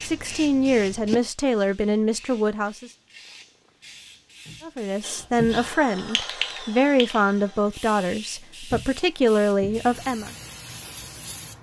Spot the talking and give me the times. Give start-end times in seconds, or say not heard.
0.0-2.9, 4.6-10.3.